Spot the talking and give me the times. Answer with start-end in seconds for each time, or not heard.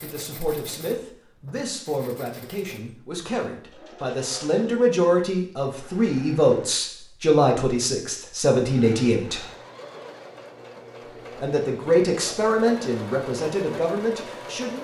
0.0-9.4, 11.4-14.7.